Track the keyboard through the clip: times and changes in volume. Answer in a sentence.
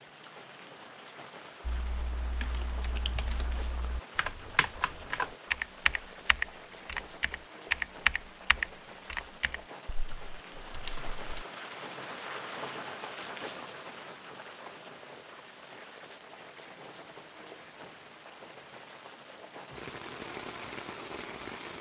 You can hear the keyboard from 1.6 to 11.4 s, getting louder then quieter.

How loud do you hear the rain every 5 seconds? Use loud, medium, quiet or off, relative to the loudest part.
medium, medium, loud, medium, loud.